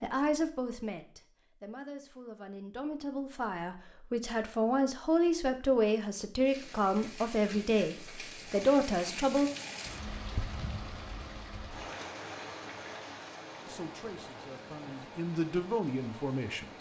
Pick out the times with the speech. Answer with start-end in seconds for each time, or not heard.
0.0-9.5, 13.7-16.7.